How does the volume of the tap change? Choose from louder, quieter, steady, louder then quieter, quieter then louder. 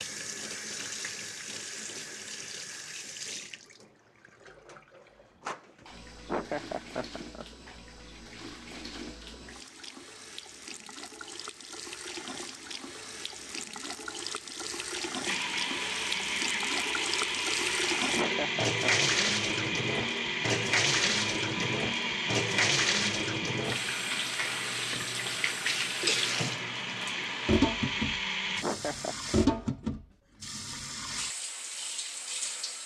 louder.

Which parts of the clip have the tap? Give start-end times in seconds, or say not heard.
0.0-32.8.